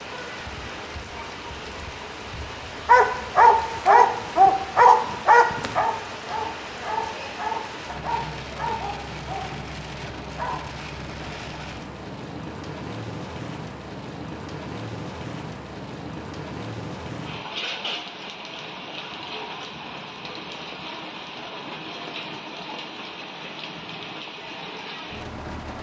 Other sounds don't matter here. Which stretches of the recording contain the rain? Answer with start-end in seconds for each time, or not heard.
0.0-25.7.